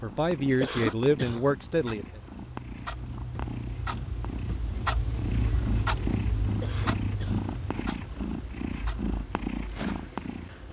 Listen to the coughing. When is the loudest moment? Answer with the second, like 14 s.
1 s.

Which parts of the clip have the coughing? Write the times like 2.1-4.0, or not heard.
0.6-1.4, 6.6-7.5.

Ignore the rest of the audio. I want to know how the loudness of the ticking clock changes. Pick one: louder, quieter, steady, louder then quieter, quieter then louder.
louder then quieter.